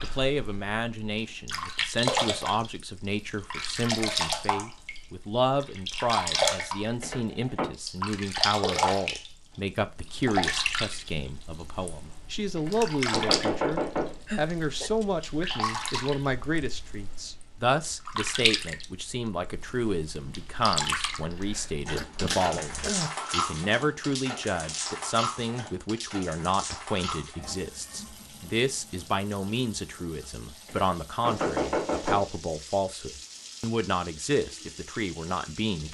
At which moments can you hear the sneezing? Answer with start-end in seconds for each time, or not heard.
14.2-15.1, 21.3-23.1.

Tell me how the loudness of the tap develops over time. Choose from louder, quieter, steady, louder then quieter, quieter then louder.
quieter.